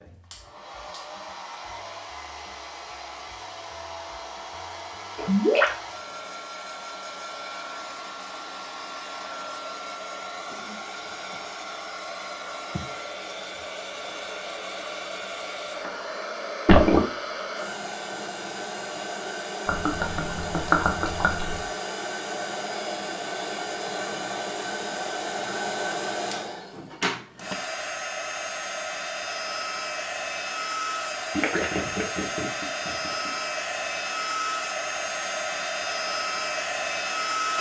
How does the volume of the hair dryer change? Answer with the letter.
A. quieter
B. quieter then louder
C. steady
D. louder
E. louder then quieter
D.